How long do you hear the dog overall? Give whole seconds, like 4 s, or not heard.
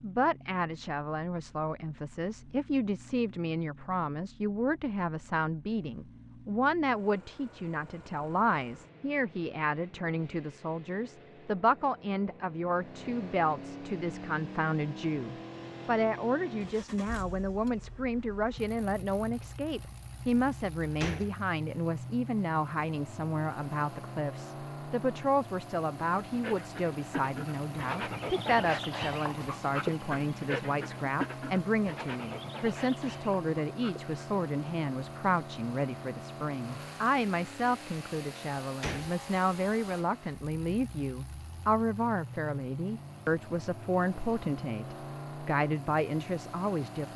8 s.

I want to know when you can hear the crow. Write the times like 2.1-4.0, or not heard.
not heard.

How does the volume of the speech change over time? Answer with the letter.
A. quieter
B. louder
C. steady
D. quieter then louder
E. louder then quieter
C.